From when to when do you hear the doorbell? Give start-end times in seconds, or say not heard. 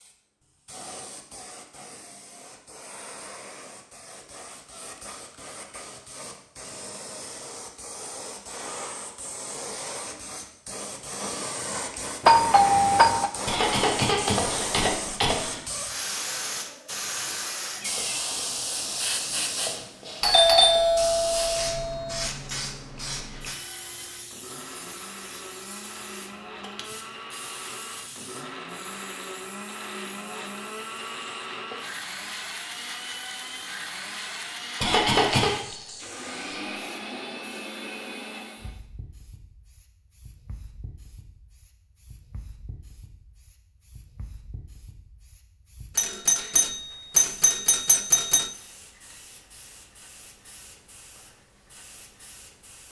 12.2-13.3, 20.2-22.3, 46.0-48.5.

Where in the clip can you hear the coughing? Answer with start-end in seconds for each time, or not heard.
13.4-15.7, 34.8-35.5.